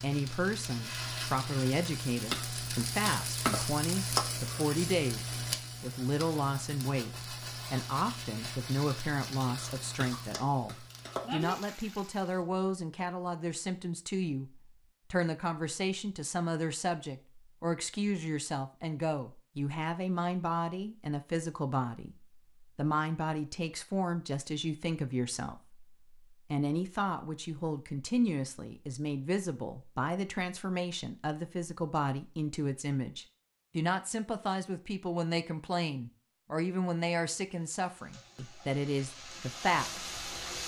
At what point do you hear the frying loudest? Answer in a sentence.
The volume of the frying peaks at 4 seconds.